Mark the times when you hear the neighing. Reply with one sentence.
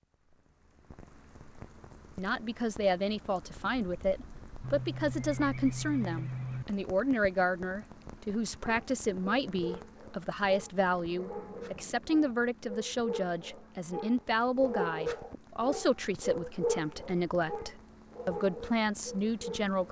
You can hear the neighing from 4.6 to 6.7 s and from 10.8 to 12.2 s.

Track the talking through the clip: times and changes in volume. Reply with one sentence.
The talking can be heard from 2.1 to 19.8 s, at a steady volume.